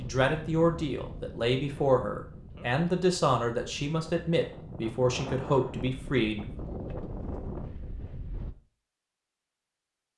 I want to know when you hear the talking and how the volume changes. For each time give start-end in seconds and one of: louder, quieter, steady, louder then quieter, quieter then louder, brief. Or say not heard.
0.0-6.6 steady.